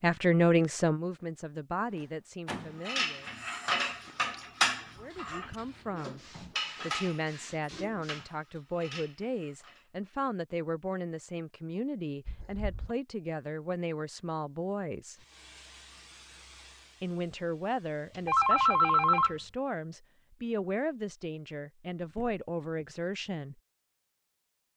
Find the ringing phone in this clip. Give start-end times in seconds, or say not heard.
18.2-19.4.